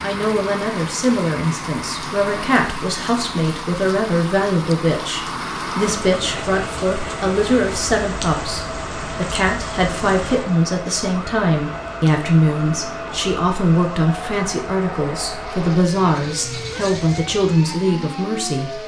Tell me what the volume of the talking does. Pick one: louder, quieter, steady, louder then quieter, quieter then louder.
steady.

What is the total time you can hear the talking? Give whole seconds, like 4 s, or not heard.
19 s.